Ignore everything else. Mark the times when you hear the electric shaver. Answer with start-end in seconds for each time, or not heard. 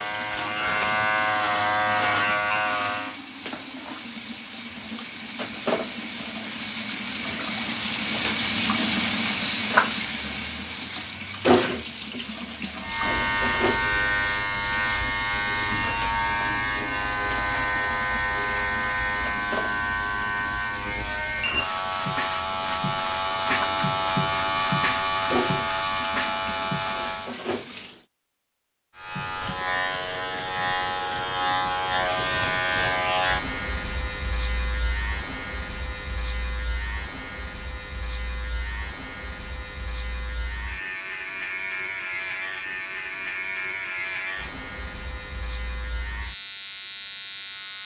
0.0-3.2, 12.8-27.4, 28.9-47.8.